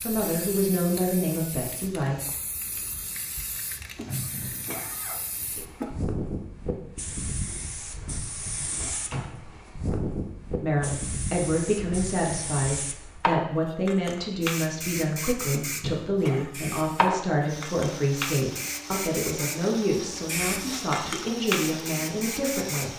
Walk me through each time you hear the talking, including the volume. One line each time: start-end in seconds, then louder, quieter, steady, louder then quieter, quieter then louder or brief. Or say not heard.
0.0-2.1 brief
10.6-22.9 steady.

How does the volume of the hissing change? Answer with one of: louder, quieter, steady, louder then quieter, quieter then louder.
louder.